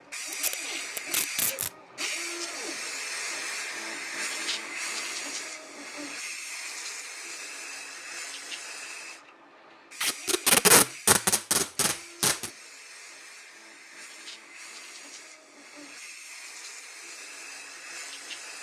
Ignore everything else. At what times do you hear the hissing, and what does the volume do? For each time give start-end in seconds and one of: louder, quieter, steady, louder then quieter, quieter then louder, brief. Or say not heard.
0.1-18.5 quieter.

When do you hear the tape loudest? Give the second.
11 s.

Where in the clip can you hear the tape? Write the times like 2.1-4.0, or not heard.
0.3-1.7, 10.0-12.5.